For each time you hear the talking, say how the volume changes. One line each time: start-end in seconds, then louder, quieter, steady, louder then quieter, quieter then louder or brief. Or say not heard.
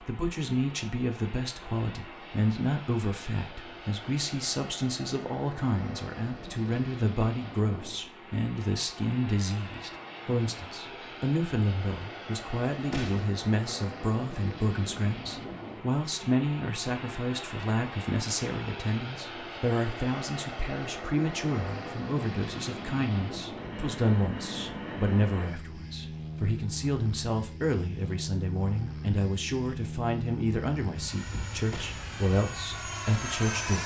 0.0-33.8 steady.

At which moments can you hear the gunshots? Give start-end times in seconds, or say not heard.
12.9-13.4, 31.7-32.1.